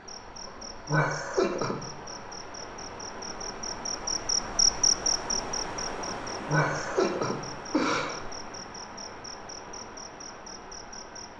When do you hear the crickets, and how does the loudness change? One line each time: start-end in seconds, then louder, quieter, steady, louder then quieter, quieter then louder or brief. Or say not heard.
0.0-11.3 louder then quieter.